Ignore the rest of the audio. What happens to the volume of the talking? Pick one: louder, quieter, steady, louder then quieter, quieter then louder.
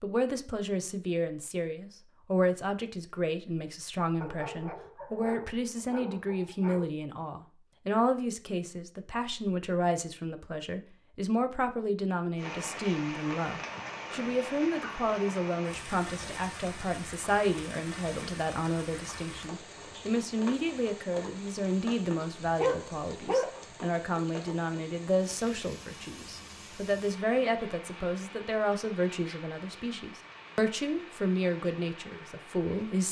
steady.